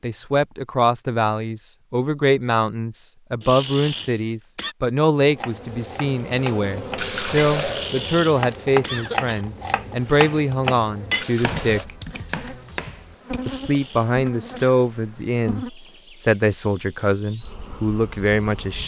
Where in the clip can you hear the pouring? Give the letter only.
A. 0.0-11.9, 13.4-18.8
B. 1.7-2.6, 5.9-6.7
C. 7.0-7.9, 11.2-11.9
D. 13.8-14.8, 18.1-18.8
C.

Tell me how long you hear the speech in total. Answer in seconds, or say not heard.
17 s.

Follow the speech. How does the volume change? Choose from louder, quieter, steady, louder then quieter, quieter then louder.
steady.